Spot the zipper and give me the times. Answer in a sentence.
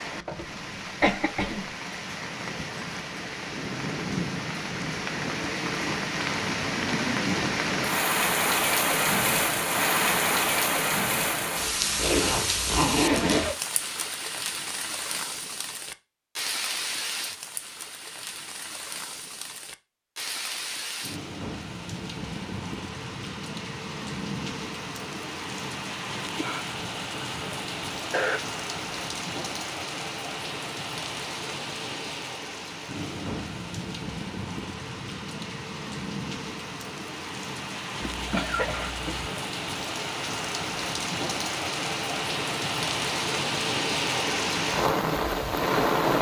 You can hear the zipper from 11.9 to 13.4 s.